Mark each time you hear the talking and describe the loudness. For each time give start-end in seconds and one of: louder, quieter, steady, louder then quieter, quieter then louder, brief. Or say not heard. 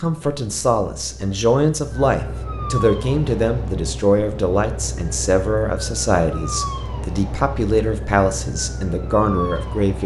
0.0-10.0 steady.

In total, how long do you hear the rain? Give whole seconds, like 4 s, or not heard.
not heard.